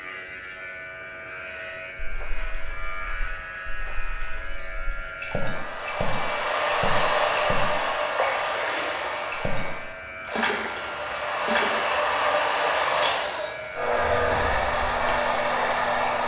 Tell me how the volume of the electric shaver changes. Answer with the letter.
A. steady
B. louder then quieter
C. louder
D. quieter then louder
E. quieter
A.